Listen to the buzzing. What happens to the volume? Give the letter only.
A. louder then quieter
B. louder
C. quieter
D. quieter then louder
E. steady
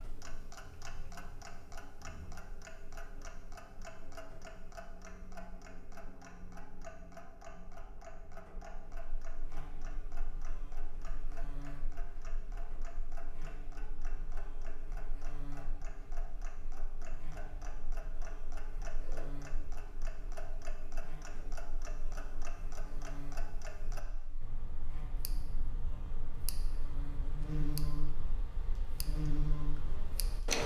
B.